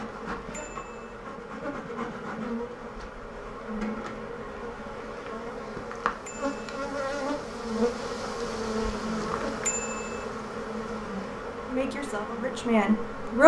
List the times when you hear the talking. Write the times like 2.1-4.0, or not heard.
11.7-13.4.